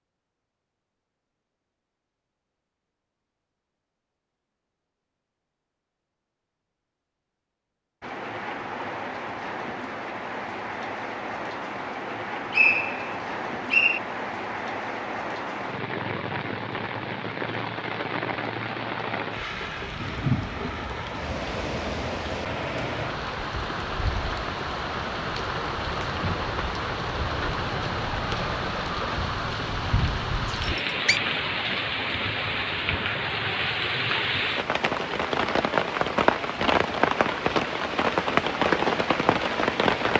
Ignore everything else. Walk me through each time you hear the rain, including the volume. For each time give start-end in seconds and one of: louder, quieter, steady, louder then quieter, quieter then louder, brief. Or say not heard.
8.0-40.1 louder.